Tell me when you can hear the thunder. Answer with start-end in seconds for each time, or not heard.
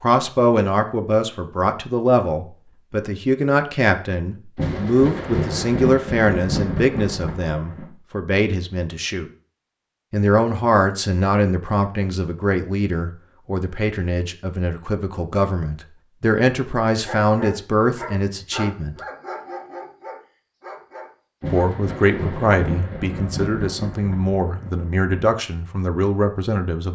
4.5-7.9, 21.4-25.3.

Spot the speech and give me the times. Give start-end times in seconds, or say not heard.
0.0-9.3, 10.1-18.9, 21.5-26.9.